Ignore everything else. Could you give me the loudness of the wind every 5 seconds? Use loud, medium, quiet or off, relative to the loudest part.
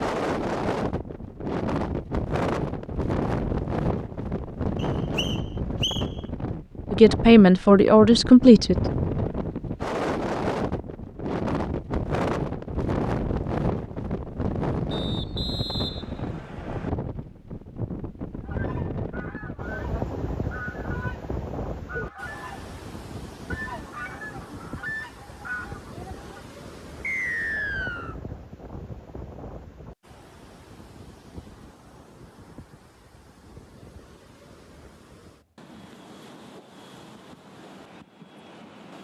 loud, loud, loud, medium, medium, quiet, quiet, quiet.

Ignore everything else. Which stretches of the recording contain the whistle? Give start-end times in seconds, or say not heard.
4.8-6.0, 14.9-16.9, 27.0-28.1.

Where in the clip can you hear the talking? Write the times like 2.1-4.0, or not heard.
6.9-8.8.